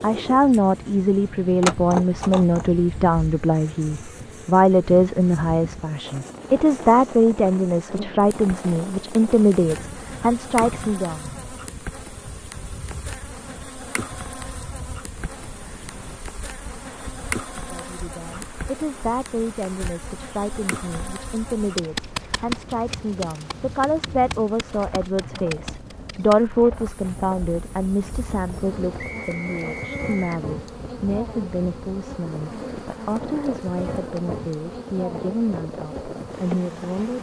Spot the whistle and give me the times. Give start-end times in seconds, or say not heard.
28.9-30.4.